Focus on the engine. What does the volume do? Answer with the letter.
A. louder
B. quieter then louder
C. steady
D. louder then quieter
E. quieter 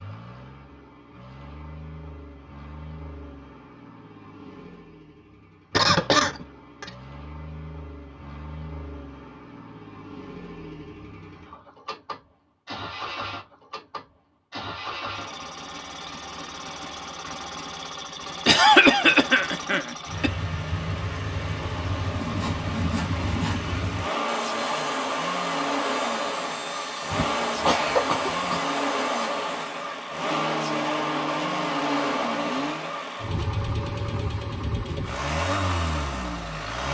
A.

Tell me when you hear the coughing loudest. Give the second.
19 s.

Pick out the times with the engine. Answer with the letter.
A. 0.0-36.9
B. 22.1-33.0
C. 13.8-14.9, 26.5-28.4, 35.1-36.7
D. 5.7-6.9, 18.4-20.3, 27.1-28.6
A.